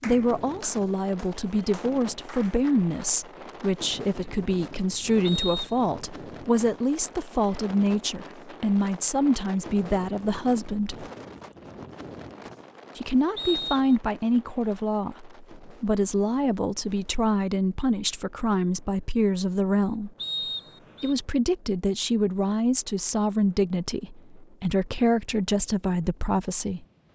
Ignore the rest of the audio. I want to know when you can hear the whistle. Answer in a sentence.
The whistle can be heard from 5.2 to 5.8 s, from 13.3 to 14.0 s and from 20.1 to 21.1 s.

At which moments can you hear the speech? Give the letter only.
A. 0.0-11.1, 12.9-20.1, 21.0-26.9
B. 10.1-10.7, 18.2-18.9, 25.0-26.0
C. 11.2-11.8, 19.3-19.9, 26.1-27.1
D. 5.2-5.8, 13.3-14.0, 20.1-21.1
A.